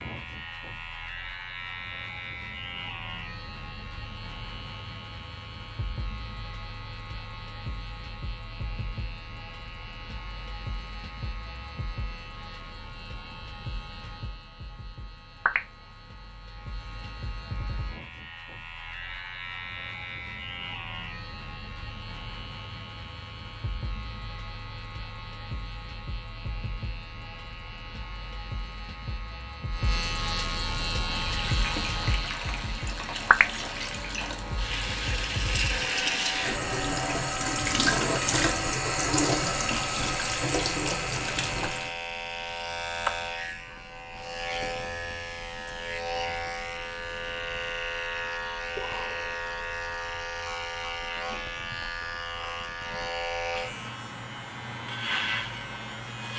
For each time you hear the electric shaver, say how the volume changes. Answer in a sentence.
The electric shaver can be heard from 0.0 to 56.3 s, getting louder.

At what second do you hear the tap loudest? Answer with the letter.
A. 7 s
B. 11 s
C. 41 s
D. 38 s
D.